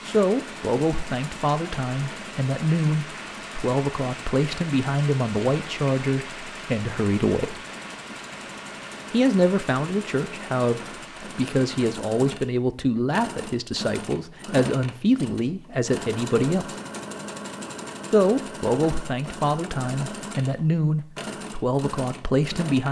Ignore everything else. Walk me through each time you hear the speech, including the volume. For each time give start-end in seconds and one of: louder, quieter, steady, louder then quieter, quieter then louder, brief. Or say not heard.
0.1-7.6 steady
9.1-16.8 steady
18.1-22.8 steady.